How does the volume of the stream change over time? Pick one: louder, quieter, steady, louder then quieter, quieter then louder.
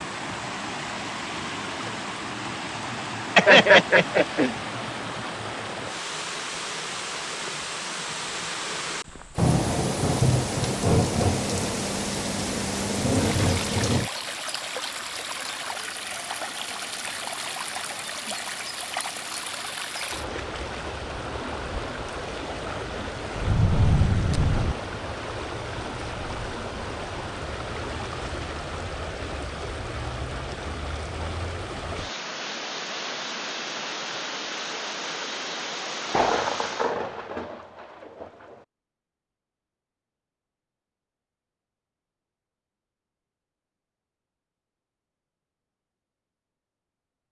steady.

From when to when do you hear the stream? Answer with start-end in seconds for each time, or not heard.
0.0-37.0.